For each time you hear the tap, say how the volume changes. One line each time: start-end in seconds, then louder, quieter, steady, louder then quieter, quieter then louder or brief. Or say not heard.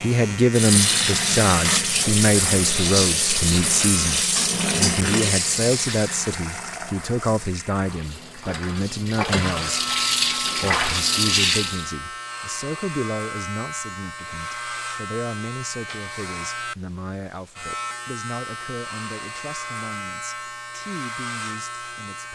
0.0-11.9 quieter then louder.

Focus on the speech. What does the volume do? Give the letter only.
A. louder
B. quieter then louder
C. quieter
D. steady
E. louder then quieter
C.